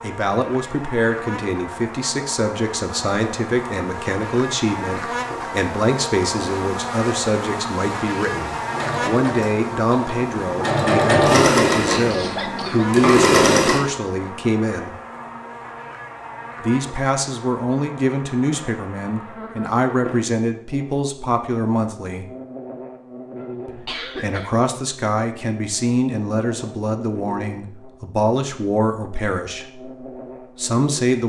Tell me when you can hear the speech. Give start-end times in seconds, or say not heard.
0.0-14.9, 16.6-22.3, 23.6-31.2.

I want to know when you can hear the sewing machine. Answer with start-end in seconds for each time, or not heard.
8.4-13.8.